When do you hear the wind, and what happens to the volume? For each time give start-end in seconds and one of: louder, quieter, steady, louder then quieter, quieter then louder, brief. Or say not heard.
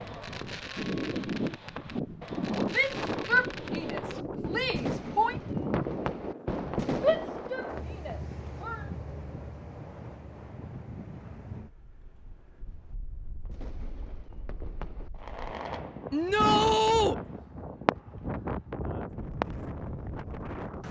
0.0-20.8 quieter then louder.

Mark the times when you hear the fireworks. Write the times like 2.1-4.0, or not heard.
0.0-8.0, 13.4-17.9.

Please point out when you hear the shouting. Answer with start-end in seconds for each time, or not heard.
2.7-5.3, 7.0-8.8, 16.1-17.1.